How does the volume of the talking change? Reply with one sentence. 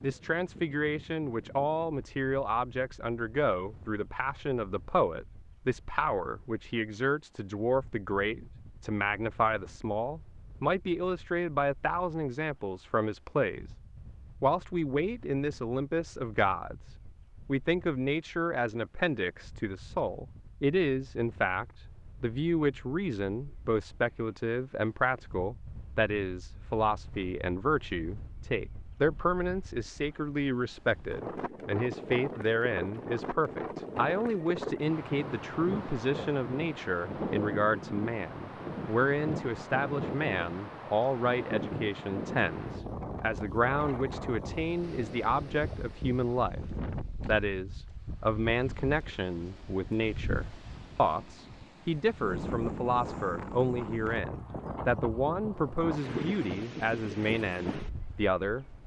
The loudness of the talking stays about the same.